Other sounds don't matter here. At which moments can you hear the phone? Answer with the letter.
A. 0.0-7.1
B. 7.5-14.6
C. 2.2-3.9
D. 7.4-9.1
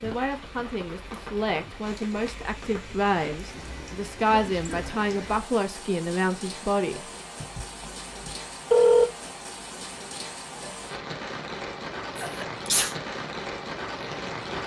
D.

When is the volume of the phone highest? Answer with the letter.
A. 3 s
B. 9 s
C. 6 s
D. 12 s
B.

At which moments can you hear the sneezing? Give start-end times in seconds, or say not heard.
4.3-4.9, 12.2-12.9.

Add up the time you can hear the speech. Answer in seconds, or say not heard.
7 s.